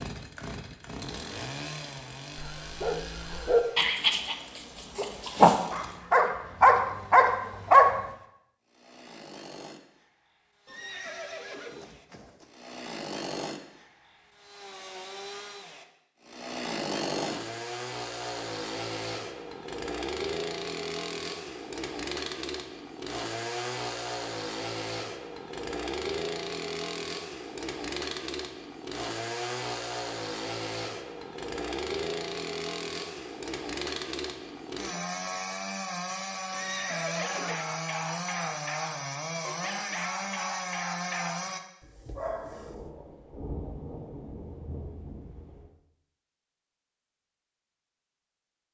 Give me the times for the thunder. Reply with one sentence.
The thunder can be heard from 42.2 to 45.7 s.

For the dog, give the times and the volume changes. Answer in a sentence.
The dog can be heard from 2.4 to 8.0 s, getting louder; and from 37.1 to 42.9 s, at a steady volume.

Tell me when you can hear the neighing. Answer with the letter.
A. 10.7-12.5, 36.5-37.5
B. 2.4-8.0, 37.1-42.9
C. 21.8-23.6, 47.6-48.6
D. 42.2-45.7
A.